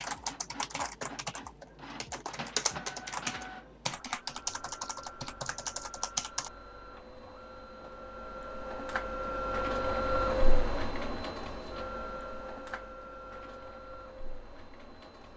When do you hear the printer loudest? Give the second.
10 s.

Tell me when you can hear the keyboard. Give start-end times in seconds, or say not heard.
0.0-6.5.